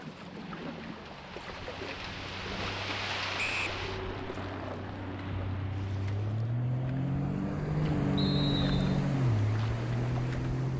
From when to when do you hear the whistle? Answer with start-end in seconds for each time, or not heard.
3.4-3.8, 8.2-9.0.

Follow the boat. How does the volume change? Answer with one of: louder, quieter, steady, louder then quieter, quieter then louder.
louder.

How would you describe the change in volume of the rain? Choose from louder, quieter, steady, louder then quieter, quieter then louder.
louder then quieter.